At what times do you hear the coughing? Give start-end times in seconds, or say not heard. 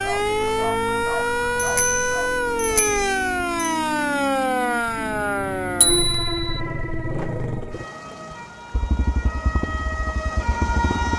not heard.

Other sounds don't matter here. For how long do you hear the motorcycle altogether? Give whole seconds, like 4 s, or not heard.
11 s.